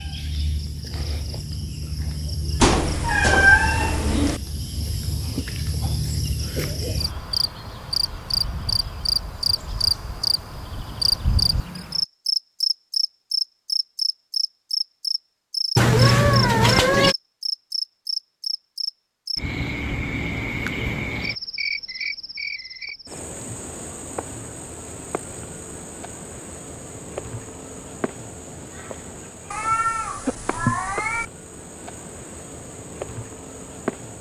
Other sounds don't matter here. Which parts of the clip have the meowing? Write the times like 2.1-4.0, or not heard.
2.6-4.4, 15.8-17.1, 29.5-31.2.